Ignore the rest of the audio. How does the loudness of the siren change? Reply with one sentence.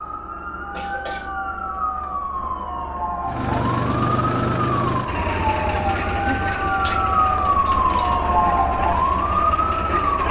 The volume of the siren goes up.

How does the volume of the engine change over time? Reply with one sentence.
The loudness of the engine goes down.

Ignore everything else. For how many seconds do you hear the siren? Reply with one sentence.
You can hear the siren for 10 seconds altogether.